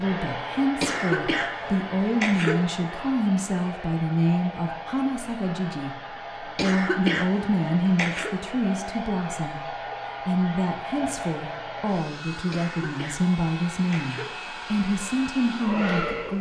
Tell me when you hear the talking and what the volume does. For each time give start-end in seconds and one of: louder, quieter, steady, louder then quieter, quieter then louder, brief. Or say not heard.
0.0-16.3 steady.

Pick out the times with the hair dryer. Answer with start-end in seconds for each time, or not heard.
0.0-16.3.